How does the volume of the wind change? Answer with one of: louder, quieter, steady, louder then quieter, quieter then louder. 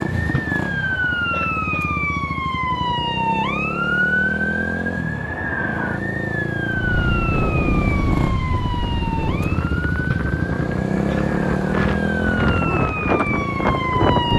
quieter then louder.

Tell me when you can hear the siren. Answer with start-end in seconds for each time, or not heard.
0.0-14.3.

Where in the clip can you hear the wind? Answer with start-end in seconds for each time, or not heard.
6.7-14.3.